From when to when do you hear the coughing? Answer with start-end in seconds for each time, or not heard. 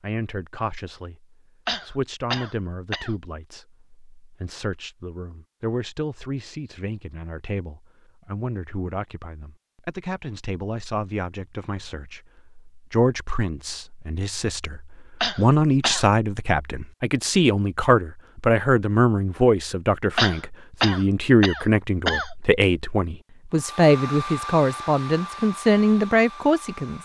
1.6-3.1, 15.2-16.1, 20.1-22.4.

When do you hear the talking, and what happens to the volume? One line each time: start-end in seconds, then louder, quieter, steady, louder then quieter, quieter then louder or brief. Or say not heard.
0.0-27.0 louder.